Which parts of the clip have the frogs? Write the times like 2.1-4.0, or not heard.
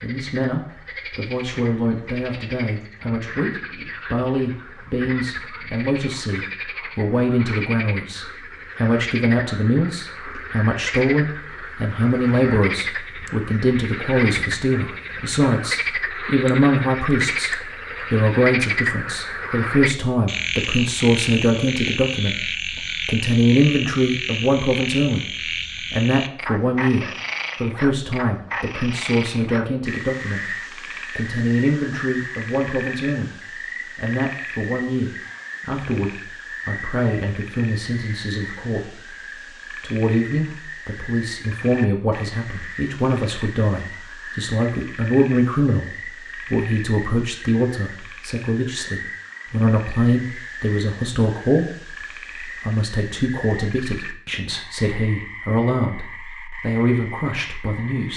0.0-58.1.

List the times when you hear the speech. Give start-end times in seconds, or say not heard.
0.0-25.2, 25.9-33.3, 34.0-39.1, 39.8-58.1.